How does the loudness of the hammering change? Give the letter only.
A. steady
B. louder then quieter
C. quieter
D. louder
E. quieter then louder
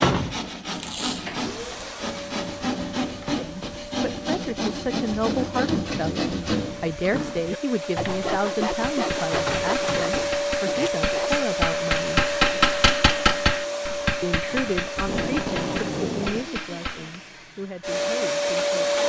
B.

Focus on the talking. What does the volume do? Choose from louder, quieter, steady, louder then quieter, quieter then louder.
quieter.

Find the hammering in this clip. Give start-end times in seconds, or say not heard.
8.0-17.1.